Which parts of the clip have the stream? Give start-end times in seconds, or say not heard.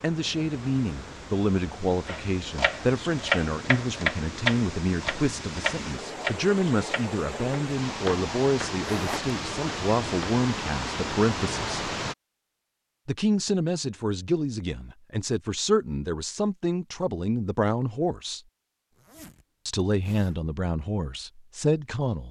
0.0-12.2.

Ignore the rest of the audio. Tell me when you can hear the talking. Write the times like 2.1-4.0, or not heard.
0.0-11.8, 13.1-18.4, 19.6-22.2.